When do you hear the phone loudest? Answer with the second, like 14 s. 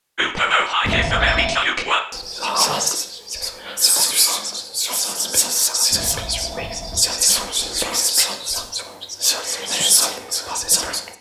1 s.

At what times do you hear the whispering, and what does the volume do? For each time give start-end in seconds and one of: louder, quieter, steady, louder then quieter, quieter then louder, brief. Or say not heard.
0.1-11.1 steady.